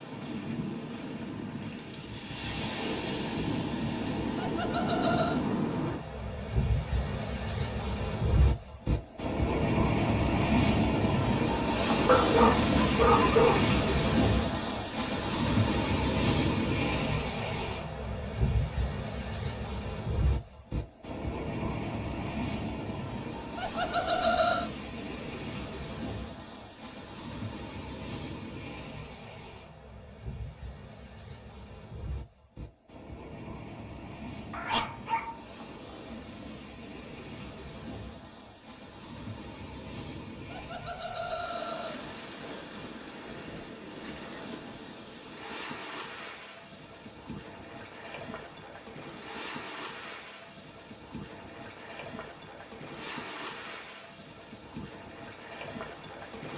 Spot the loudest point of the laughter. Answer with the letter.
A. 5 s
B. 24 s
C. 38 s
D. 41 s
B.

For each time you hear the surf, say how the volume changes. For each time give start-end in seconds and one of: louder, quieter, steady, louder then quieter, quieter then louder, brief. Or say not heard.
0.0-56.5 quieter.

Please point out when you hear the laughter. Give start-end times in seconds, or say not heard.
4.3-5.5, 23.6-24.7, 40.5-42.0.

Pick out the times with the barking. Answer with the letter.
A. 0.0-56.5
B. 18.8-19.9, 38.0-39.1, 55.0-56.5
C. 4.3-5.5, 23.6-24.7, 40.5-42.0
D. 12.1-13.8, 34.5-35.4
D.